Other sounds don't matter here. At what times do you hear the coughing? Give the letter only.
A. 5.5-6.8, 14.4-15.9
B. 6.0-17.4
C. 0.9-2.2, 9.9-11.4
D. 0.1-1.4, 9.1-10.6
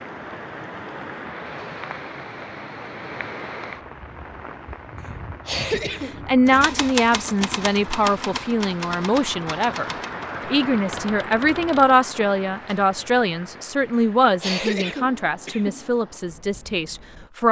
A.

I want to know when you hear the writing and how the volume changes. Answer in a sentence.
You can't hear the writing here.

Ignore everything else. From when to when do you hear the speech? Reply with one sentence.
The speech can be heard from 6.0 to 17.4 s.